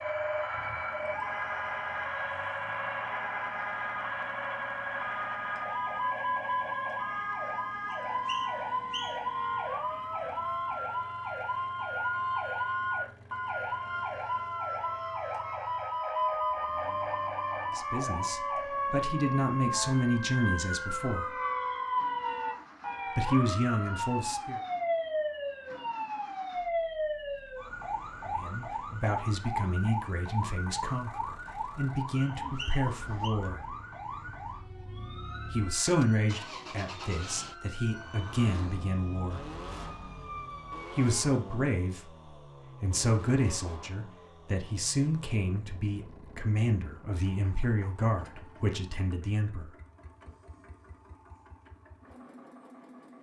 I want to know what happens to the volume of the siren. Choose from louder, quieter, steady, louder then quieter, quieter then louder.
quieter.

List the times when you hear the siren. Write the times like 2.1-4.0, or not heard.
0.0-41.0.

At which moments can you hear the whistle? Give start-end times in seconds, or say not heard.
7.9-9.3, 32.4-33.3.